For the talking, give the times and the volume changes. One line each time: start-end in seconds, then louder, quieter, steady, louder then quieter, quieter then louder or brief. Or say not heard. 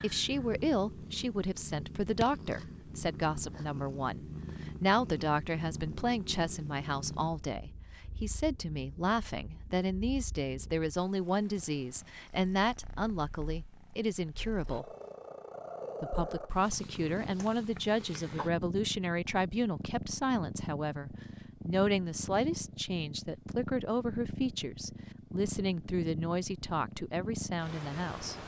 0.0-14.9 steady
16.0-28.4 steady.